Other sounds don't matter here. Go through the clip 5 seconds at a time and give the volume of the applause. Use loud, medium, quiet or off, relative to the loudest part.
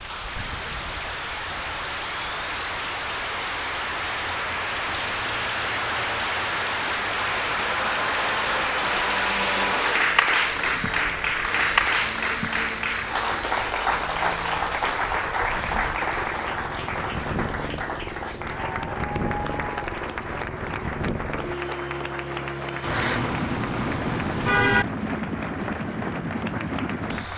medium, loud, loud, medium, medium, medium.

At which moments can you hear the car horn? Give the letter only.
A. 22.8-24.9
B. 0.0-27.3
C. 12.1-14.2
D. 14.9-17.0
A.